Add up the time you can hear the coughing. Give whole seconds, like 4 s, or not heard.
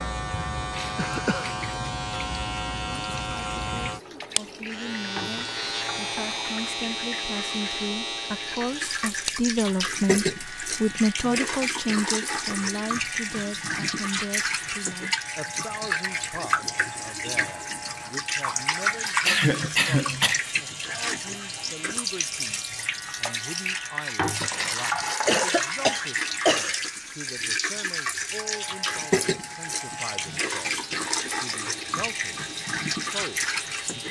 3 s.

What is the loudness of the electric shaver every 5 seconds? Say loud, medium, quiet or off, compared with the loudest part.
loud, loud, medium, medium, medium, medium, medium.